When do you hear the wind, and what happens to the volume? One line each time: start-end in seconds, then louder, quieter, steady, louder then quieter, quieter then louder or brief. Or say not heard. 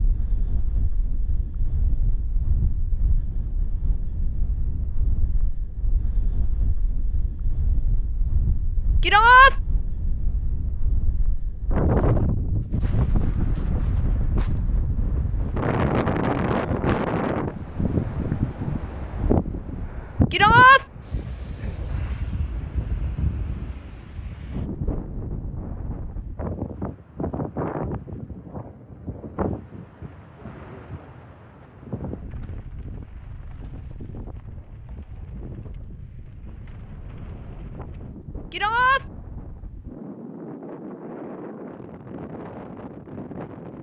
0.0-43.7 louder then quieter.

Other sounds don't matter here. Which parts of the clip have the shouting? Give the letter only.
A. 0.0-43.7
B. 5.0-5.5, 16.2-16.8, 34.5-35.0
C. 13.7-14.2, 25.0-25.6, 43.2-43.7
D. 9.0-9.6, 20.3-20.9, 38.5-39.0
D.